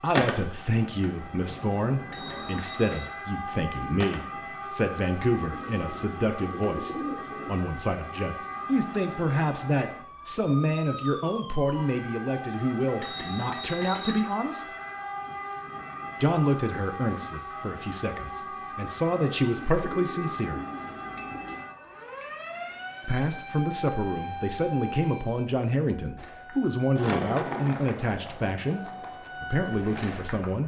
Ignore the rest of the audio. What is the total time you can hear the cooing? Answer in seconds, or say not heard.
4 s.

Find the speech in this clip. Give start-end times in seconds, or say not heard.
0.0-14.7, 16.2-20.6, 23.1-30.6.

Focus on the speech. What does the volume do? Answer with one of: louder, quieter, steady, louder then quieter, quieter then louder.
steady.